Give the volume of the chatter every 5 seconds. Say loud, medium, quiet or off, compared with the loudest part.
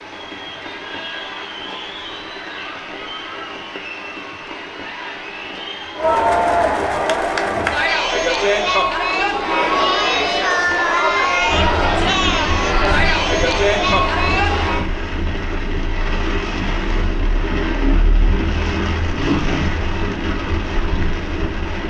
quiet, loud, loud, off, off.